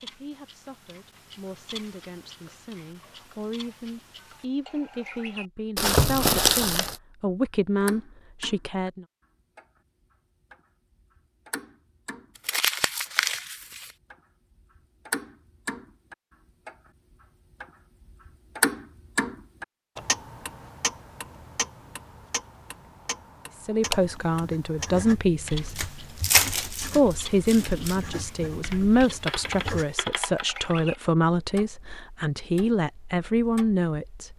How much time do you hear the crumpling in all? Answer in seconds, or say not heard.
5 s.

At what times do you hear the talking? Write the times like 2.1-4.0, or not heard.
0.0-9.1, 23.6-25.9, 26.9-34.3.